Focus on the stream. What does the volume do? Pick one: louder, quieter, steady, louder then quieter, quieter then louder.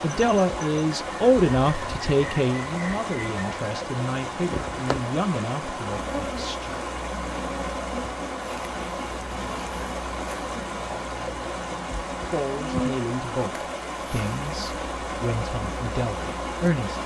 steady.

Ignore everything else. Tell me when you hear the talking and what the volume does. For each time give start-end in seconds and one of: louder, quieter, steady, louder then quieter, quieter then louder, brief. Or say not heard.
0.0-6.8 quieter
12.1-17.0 steady.